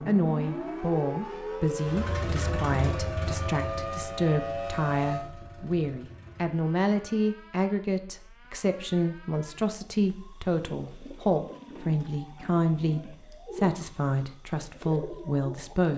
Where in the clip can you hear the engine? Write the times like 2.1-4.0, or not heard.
1.8-6.5.